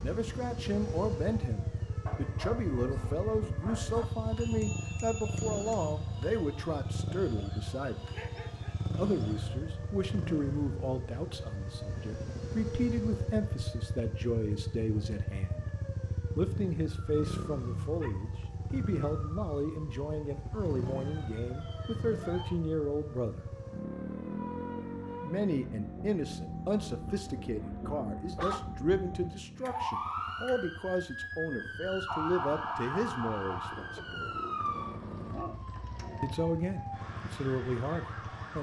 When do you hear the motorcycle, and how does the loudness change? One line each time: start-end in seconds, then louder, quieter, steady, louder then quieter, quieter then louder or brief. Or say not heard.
0.0-38.5 quieter.